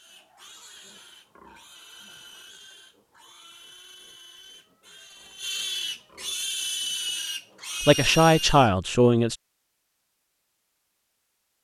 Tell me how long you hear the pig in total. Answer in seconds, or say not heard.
9 s.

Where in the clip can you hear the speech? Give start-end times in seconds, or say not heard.
7.8-9.3.